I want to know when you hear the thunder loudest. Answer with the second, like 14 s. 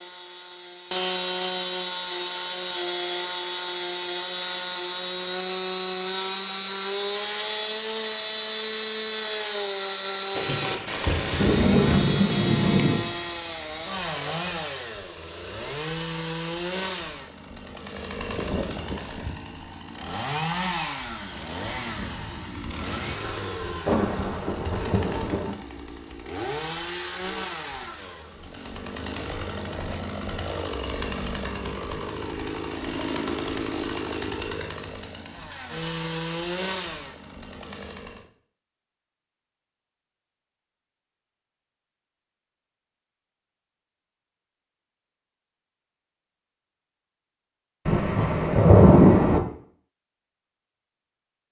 49 s.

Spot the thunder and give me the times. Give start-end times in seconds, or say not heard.
10.3-13.1, 23.9-25.6, 47.9-49.4.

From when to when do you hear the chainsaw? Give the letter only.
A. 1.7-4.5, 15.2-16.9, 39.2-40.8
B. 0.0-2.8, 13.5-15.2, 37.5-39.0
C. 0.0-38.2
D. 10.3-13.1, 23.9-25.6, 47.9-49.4
C.